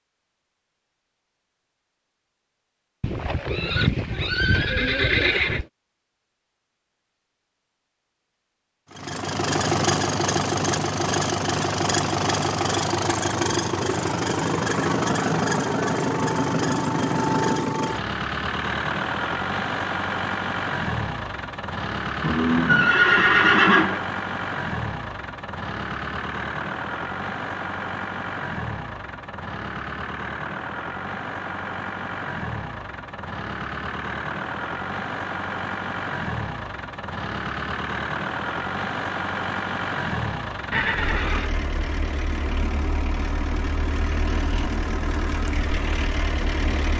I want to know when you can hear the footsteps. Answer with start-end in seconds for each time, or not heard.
not heard.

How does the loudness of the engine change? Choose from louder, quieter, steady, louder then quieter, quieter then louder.
quieter.